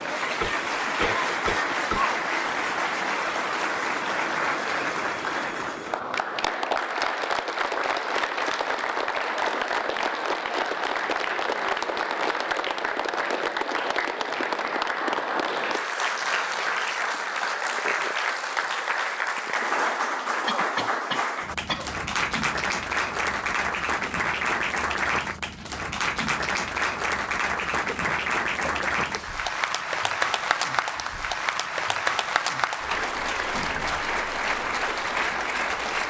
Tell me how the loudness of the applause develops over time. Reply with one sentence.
The loudness of the applause stays about the same.